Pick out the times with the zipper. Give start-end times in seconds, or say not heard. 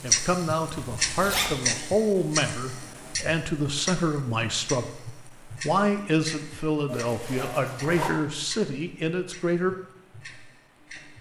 0.8-1.6, 6.8-8.1.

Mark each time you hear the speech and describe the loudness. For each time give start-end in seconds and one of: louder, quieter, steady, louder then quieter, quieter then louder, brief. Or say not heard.
0.0-9.8 steady.